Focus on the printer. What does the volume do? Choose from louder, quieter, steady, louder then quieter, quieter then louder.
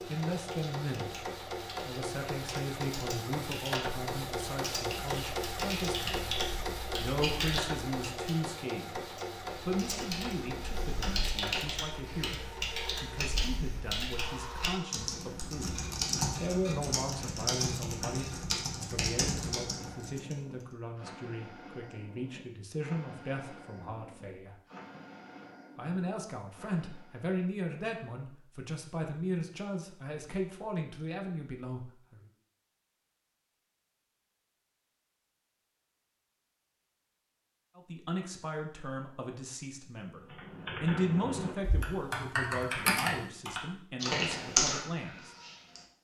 quieter.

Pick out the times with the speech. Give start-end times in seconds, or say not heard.
0.1-15.8, 16.4-24.6, 25.8-32.2, 37.8-45.4.